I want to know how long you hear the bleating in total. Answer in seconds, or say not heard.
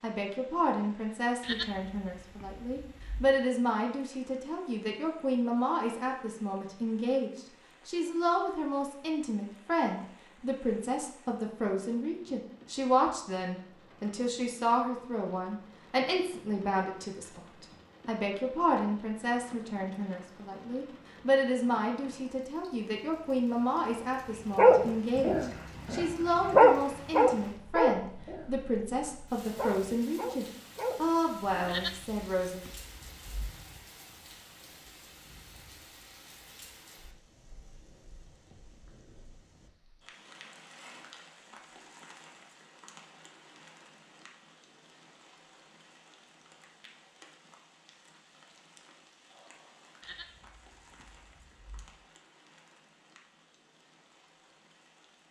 6 s.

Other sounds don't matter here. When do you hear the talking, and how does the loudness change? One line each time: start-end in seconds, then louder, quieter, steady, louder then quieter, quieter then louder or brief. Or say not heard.
0.0-32.6 steady.